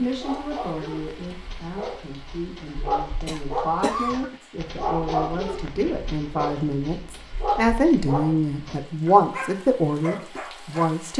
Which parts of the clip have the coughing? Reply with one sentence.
You can hear the coughing from 3.2 to 4.4 s.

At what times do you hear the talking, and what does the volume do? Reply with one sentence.
The talking can be heard from 0.0 to 11.1 s, getting louder.